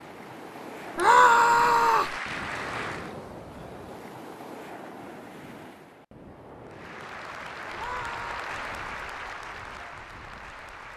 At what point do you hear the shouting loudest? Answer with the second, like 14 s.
1 s.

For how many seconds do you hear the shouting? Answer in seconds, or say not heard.
2 s.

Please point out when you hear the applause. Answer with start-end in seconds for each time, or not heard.
0.0-3.1, 6.6-10.9.